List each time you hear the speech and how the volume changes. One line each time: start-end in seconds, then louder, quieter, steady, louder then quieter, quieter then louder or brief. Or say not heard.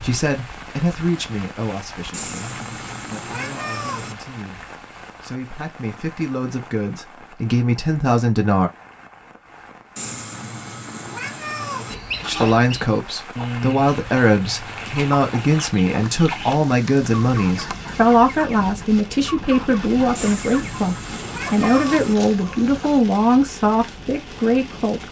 0.0-8.7 quieter then louder
12.2-25.0 steady.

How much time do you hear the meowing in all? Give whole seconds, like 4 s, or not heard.
6 s.